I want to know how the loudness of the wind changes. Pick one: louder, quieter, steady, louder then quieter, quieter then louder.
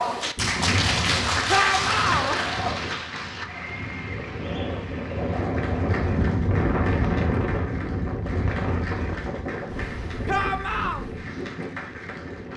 louder then quieter.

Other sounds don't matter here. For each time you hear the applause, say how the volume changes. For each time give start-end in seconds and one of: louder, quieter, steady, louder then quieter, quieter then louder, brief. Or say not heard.
0.0-12.5 quieter.